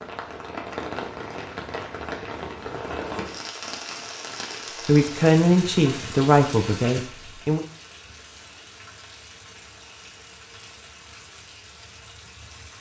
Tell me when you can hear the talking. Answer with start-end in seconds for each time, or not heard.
4.8-7.7.